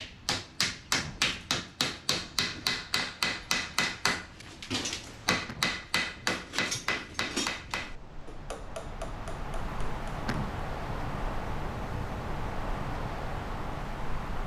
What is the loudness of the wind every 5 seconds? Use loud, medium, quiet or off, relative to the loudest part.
quiet, medium, loud.